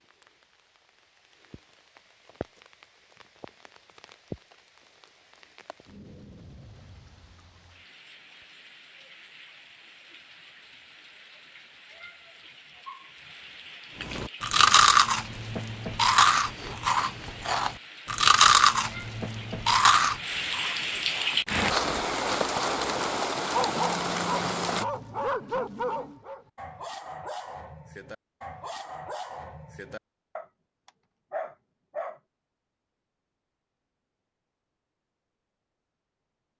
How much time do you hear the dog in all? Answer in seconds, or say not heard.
9 s.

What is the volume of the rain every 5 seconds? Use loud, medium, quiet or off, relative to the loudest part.
quiet, quiet, quiet, quiet, loud, off, off, off.